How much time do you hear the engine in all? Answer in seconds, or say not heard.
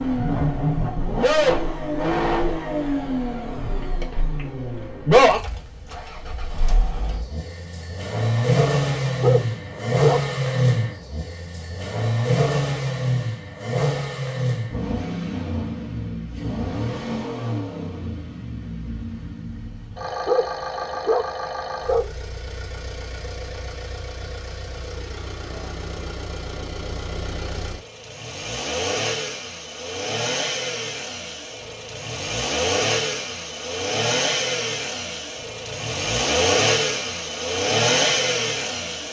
39 s.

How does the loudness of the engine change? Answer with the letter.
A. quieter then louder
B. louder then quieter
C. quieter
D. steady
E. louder
A.